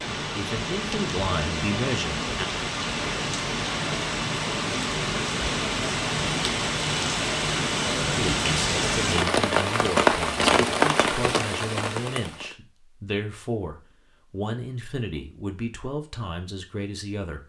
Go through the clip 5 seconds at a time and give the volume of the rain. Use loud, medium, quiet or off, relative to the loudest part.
medium, loud, loud, off.